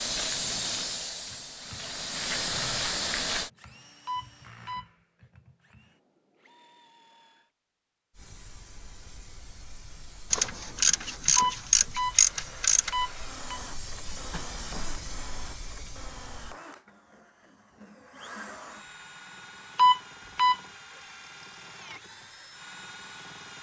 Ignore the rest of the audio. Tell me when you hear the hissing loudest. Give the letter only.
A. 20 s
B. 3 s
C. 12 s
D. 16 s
B.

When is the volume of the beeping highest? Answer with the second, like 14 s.
20 s.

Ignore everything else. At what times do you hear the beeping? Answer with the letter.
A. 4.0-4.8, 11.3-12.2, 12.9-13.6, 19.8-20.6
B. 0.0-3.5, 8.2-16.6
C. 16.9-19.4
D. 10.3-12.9
A.